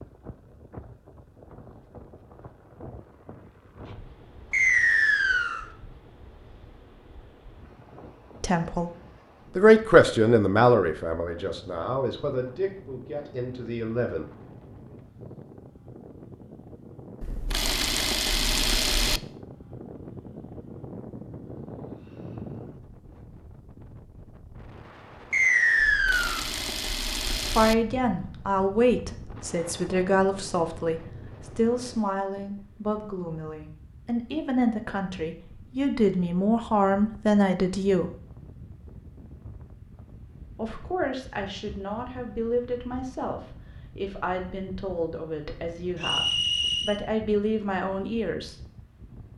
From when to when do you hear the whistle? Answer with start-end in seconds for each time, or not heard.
4.5-5.7, 25.3-26.4, 46.0-47.0.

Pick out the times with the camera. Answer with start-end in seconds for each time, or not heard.
17.2-19.2, 25.8-27.8.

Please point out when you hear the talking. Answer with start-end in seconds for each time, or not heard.
8.4-8.9, 9.6-14.2, 27.4-38.1, 40.5-48.5.